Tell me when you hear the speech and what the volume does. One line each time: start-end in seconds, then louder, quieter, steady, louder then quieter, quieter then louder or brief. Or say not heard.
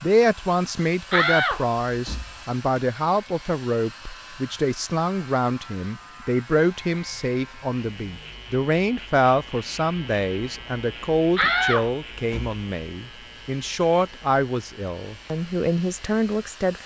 0.0-16.8 steady.